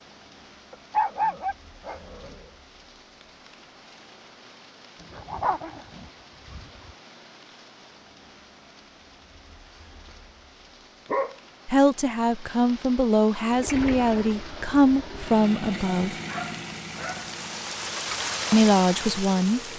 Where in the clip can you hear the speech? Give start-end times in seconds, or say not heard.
11.7-16.1, 18.5-19.6.